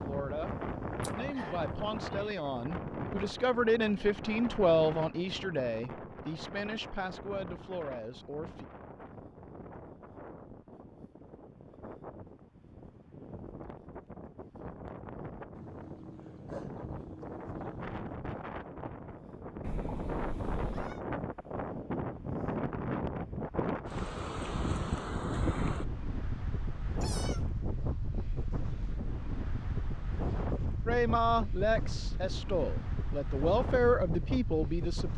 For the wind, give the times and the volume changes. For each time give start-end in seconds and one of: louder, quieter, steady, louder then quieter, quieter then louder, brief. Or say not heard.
0.0-35.1 quieter then louder.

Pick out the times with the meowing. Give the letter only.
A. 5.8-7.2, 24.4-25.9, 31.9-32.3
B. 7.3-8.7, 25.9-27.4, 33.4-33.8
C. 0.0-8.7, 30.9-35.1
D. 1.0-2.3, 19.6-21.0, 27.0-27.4
D.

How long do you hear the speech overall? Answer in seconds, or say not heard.
13 s.